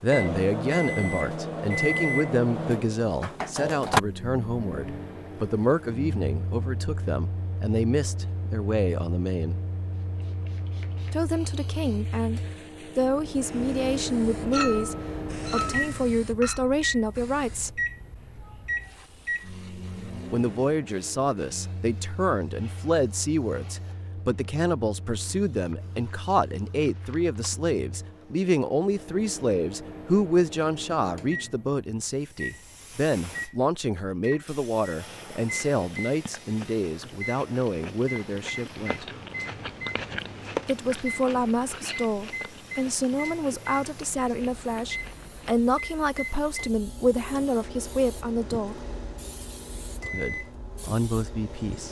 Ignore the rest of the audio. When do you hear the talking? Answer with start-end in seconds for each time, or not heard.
0.0-9.6, 11.1-17.8, 20.3-39.0, 40.6-48.9, 50.1-51.8.